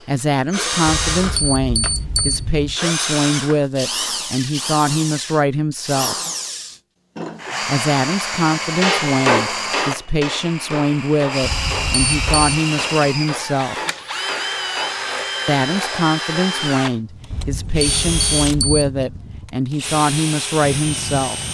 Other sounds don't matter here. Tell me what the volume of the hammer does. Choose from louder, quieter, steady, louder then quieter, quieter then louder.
quieter.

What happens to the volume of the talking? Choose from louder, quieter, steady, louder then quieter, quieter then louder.
steady.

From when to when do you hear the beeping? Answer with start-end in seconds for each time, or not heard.
0.8-2.8, 11.4-12.6, 17.3-18.9.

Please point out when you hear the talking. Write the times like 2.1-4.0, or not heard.
0.1-6.3, 7.7-13.9, 15.4-21.4.